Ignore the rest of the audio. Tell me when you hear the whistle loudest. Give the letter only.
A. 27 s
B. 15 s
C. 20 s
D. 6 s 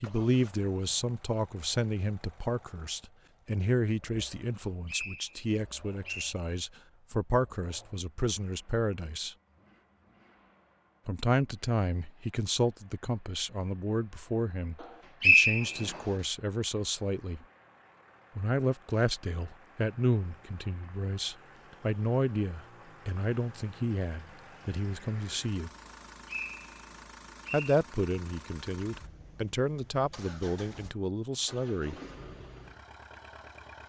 B.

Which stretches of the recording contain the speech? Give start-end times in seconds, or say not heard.
0.0-9.3, 11.1-17.4, 18.4-25.7, 27.5-31.9.